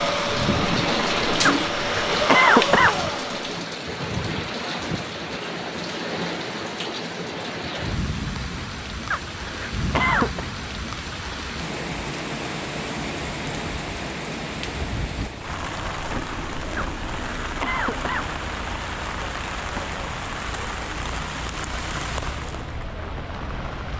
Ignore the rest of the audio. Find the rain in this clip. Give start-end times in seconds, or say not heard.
0.0-23.9.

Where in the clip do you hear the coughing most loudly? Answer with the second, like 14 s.
2 s.